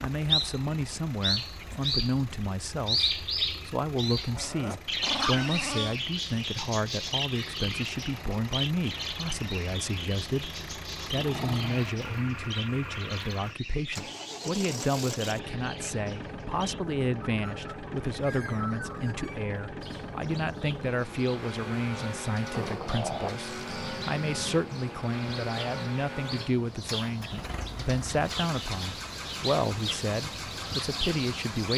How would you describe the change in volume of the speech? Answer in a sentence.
The volume of the speech stays about the same.